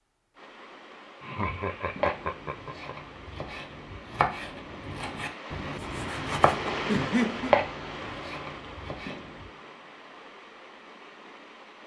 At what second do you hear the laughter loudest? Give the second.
7 s.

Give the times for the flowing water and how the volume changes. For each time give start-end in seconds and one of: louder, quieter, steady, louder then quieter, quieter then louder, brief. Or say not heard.
0.3-11.8 louder then quieter.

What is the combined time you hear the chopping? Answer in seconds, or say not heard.
8 s.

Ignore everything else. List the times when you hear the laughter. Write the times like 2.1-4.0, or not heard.
1.2-3.0, 6.8-7.5.